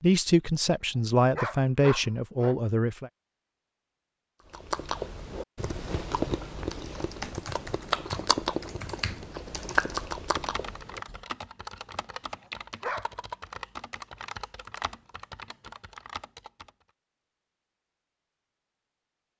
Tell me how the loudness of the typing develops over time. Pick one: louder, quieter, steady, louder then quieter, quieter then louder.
steady.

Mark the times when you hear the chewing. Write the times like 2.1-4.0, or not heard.
4.5-11.2.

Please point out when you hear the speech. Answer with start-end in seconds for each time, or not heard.
0.0-3.1.